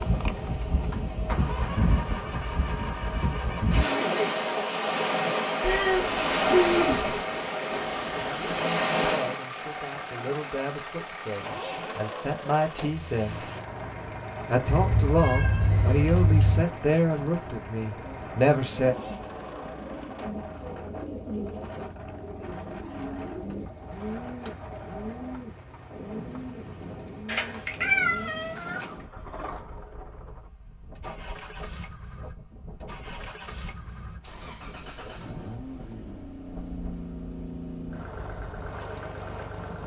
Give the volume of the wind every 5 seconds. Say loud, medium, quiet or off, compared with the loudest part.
loud, loud, quiet, quiet, quiet, quiet, quiet, quiet.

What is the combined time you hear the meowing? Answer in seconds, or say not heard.
5 s.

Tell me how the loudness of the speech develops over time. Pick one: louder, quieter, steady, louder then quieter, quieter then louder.
louder.